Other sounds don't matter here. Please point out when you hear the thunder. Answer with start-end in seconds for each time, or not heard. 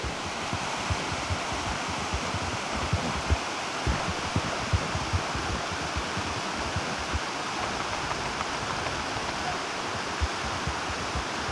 not heard.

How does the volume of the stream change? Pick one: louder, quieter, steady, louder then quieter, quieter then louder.
steady.